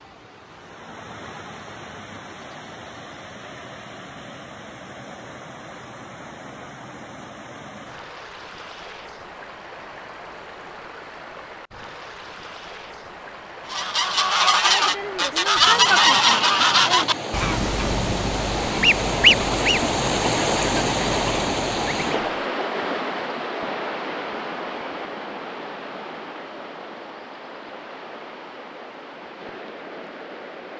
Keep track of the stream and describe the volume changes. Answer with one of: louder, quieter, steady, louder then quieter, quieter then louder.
louder then quieter.